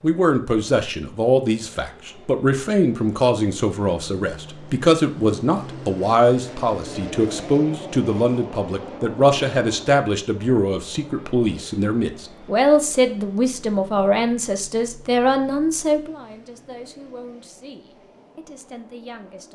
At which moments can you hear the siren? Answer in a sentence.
You can't hear the siren here.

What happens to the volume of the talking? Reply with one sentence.
The loudness of the talking goes down.